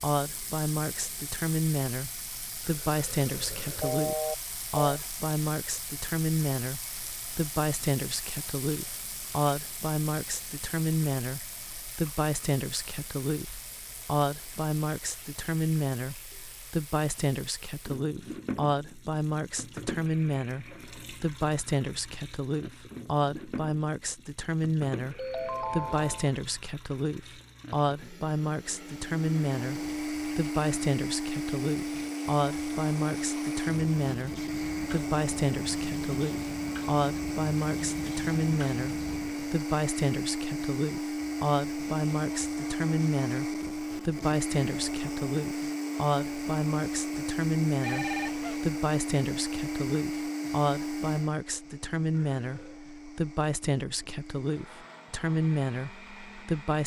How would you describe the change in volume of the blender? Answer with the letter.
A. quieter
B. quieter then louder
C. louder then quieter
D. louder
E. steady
A.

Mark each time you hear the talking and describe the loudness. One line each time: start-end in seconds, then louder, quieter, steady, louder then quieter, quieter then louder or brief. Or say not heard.
0.0-56.8 steady.